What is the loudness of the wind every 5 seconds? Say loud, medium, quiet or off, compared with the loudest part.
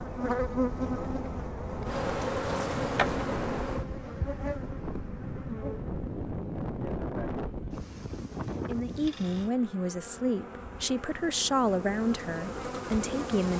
loud, loud, off.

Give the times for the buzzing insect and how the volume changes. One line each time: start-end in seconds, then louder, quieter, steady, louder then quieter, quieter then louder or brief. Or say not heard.
0.0-13.5 quieter then louder.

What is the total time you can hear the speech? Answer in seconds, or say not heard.
5 s.